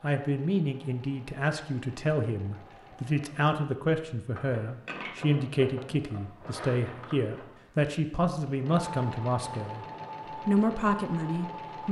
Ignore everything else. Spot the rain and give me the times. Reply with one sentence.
You can't hear the rain here.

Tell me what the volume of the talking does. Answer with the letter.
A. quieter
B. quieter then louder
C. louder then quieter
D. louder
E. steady
E.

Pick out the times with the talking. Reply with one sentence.
You can hear the talking from 0.0 to 11.8 s.